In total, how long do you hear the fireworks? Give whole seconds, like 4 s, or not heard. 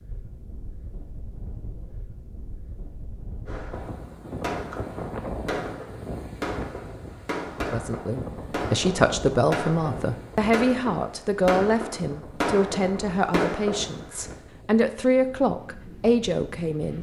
11 s.